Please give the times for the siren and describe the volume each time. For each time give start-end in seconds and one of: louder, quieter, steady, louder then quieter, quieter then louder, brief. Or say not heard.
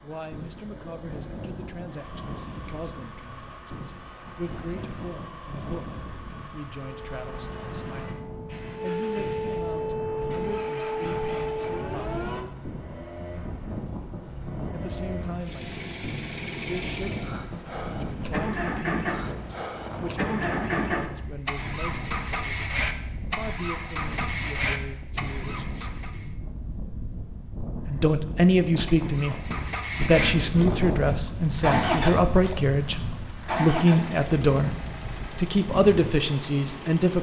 6.8-12.4 louder.